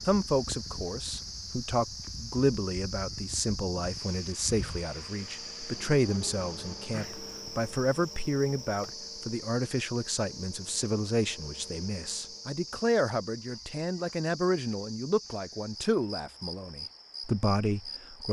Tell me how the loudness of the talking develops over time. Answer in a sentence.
The loudness of the talking stays about the same.